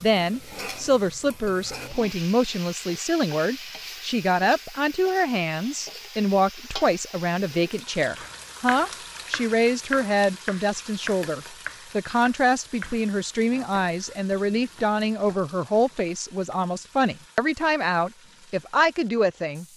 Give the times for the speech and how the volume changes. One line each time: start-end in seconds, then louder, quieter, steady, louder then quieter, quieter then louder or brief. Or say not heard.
0.0-19.6 steady.